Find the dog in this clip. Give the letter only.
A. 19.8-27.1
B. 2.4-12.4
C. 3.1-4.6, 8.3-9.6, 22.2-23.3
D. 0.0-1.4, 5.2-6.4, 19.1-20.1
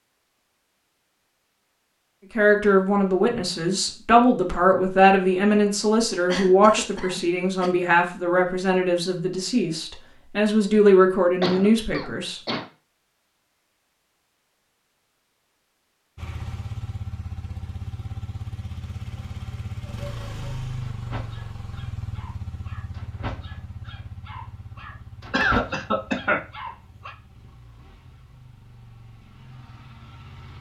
A.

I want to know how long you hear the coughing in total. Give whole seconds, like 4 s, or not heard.
4 s.